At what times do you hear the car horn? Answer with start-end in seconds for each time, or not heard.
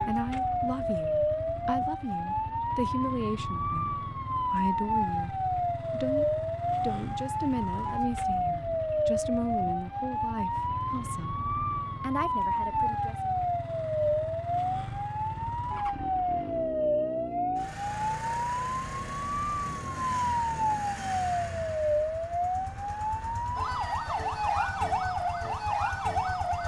not heard.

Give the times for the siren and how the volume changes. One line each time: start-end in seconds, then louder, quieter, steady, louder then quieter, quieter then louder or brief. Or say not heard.
0.0-26.6 steady.